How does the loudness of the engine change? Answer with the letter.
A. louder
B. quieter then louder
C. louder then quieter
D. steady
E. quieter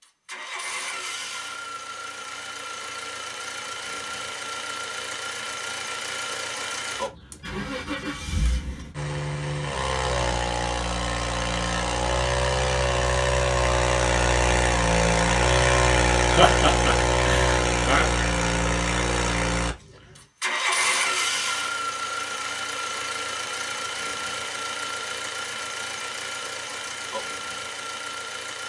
C.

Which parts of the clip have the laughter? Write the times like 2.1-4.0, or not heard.
16.3-18.1.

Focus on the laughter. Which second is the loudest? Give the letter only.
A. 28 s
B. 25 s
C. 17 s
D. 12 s
C.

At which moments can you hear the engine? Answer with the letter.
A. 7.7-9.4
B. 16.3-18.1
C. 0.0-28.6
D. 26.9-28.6
C.